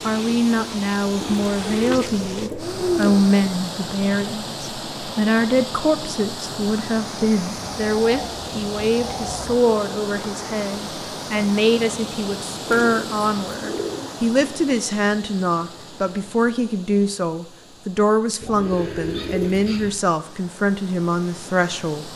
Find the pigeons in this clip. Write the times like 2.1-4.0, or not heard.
1.2-3.2, 7.5-9.6, 12.7-14.1, 18.4-19.9.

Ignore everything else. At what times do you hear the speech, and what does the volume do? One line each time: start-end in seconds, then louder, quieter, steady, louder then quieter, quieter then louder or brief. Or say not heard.
0.0-22.1 steady.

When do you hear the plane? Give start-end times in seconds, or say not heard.
not heard.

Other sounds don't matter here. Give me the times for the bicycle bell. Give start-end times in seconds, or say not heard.
not heard.